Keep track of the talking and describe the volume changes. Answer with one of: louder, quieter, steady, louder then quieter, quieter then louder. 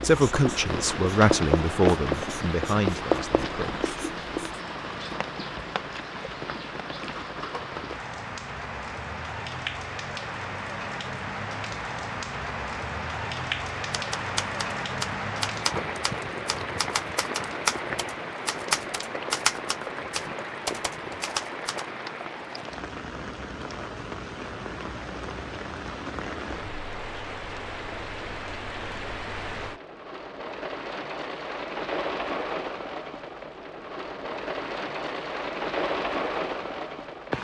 quieter.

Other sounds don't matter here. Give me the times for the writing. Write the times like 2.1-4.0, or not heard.
0.0-4.6.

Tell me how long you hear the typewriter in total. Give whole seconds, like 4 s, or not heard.
8 s.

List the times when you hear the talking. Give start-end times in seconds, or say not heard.
0.0-4.0.